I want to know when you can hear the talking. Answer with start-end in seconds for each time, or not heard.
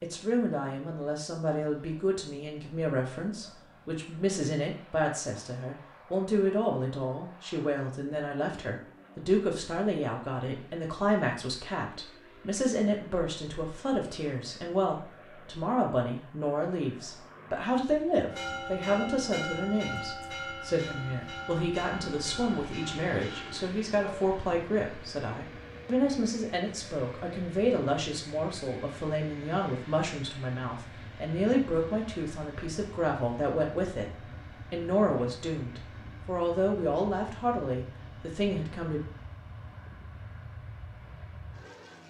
0.0-34.1, 34.7-39.0.